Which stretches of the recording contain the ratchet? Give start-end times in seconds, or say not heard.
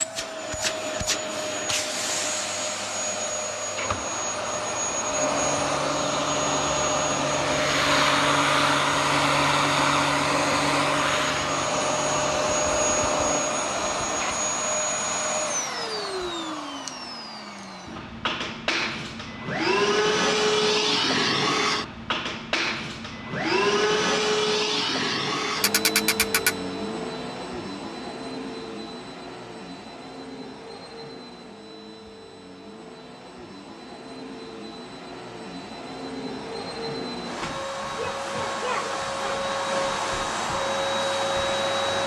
25.6-26.6.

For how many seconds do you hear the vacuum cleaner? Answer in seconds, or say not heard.
42 s.